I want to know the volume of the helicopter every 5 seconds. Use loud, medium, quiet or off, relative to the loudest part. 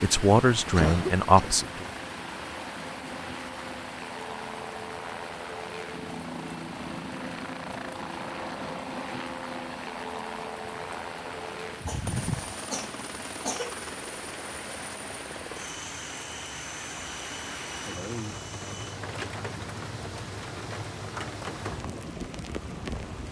loud, loud, loud, medium, medium.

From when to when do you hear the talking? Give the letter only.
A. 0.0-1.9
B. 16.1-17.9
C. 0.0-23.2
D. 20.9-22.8
A.